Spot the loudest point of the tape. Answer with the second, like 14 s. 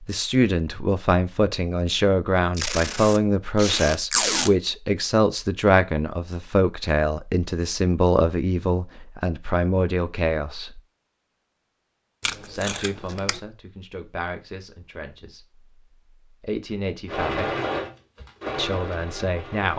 4 s.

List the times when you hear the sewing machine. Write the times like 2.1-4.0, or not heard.
17.1-19.7.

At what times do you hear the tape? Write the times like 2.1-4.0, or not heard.
2.5-4.5, 12.2-13.4.